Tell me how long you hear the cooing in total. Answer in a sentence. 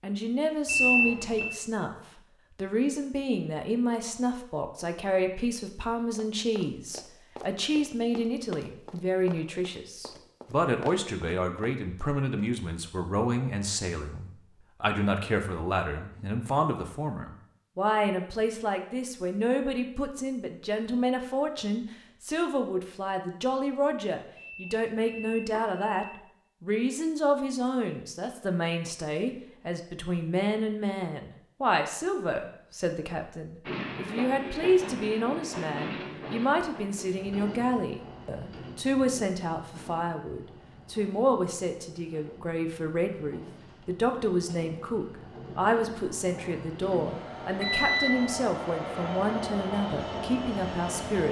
You can't hear the cooing here.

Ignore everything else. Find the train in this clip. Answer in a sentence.
You can hear the train from 33.6 to 51.2 s.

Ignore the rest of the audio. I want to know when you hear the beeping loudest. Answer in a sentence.
The loudest moment of the beeping is at 1 second.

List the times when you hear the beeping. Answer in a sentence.
You can hear the beeping from 0.7 to 1.5 s, from 24.4 to 26.1 s and from 47.6 to 48.1 s.